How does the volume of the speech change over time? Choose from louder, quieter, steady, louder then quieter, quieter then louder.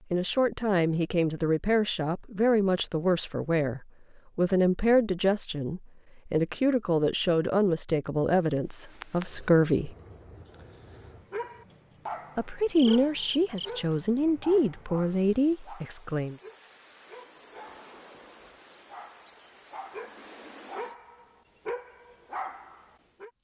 steady.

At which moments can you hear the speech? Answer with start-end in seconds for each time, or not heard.
0.1-9.9, 12.3-16.4.